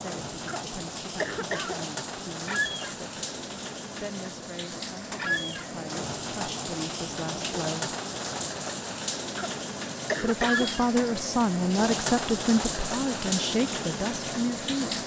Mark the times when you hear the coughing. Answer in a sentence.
The coughing can be heard from 0.5 to 1.9 s and from 9.3 to 10.8 s.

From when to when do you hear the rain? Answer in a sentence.
You can hear the rain from 0.0 to 15.0 s.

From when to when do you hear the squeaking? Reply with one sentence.
The squeaking can be heard from 2.5 to 3.0 s, from 5.2 to 5.7 s and from 10.4 to 10.9 s.